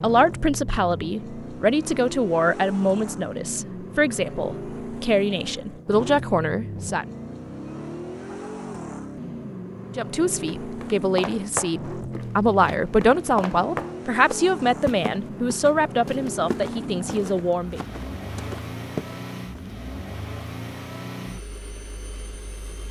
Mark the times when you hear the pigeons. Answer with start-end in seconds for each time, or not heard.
not heard.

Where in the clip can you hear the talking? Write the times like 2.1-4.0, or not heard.
0.0-7.0, 9.9-17.8.